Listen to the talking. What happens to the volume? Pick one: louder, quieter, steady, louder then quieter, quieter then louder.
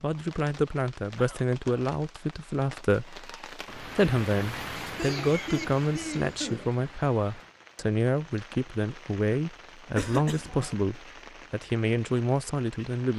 steady.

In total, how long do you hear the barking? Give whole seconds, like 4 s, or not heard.
not heard.